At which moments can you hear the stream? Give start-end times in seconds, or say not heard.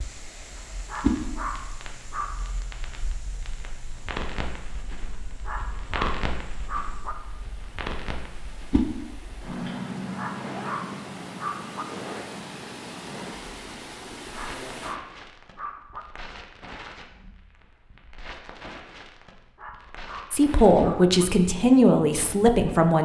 0.0-15.0.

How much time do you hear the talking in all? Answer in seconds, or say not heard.
3 s.